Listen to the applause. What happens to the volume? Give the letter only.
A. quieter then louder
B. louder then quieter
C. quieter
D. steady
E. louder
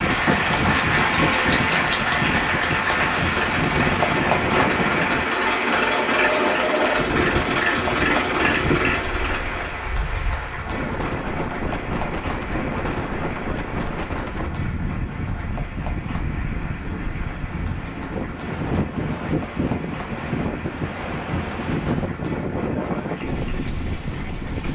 C.